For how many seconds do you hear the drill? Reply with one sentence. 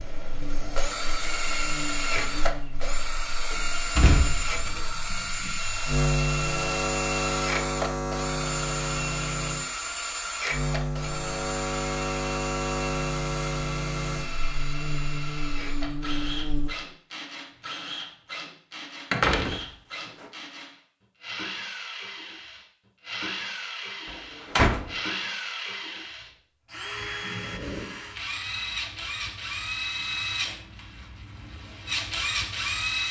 You can hear the drill for 33 seconds altogether.